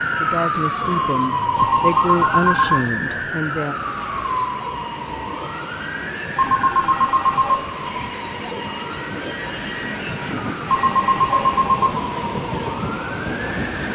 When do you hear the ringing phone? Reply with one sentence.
You can hear the ringing phone from 1.6 to 2.9 s, from 6.3 to 7.7 s and from 10.7 to 12.0 s.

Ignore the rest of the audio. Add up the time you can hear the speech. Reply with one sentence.
The speech can be heard for 4 seconds in total.